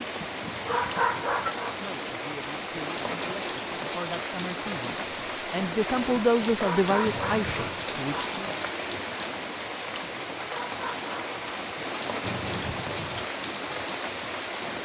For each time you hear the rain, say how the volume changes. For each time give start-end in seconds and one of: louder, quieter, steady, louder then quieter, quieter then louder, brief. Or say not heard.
0.0-14.8 steady.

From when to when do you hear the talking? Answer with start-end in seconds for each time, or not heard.
1.8-8.3.